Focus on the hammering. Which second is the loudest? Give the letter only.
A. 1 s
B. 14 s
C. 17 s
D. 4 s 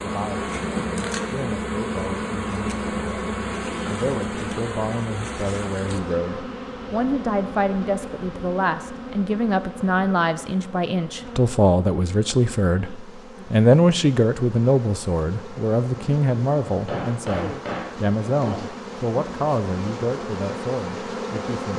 C.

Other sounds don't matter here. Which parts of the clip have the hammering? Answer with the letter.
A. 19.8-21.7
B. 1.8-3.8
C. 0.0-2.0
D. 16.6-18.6
D.